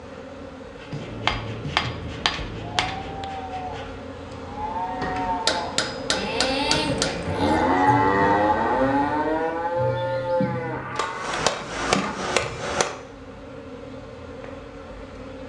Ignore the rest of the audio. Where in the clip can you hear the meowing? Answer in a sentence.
You can't hear the meowing here.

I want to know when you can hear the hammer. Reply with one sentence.
You can hear the hammer from 0.9 to 3.2 s, from 5.5 to 7.2 s and from 10.9 to 12.9 s.